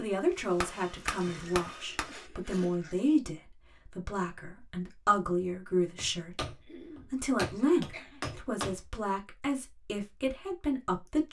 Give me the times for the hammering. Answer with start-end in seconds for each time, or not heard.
0.6-2.2, 6.0-8.8.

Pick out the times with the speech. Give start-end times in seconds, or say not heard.
0.0-11.2.